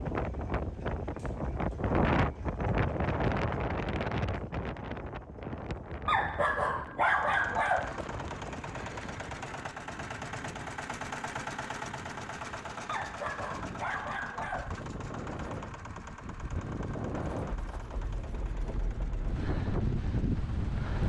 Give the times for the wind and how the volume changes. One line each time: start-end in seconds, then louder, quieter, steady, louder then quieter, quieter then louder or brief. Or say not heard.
0.0-21.0 quieter then louder.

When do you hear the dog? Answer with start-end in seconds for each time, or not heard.
6.0-8.1, 12.8-14.8.